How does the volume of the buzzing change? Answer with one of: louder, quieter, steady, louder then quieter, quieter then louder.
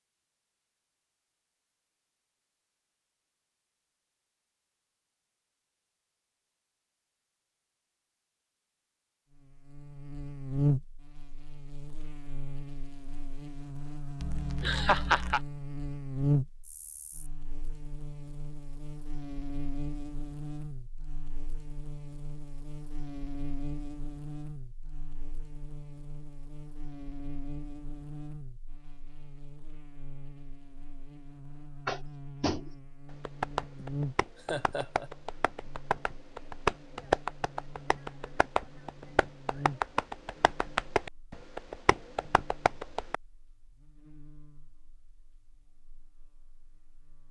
quieter.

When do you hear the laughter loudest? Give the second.
15 s.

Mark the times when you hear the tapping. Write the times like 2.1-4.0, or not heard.
31.9-43.1.